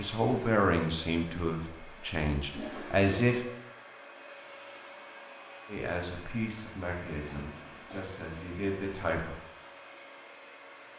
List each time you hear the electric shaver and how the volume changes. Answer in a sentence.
The electric shaver can't be heard in this clip.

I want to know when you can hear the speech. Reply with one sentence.
The speech can be heard from 0.0 to 3.5 s and from 5.7 to 9.3 s.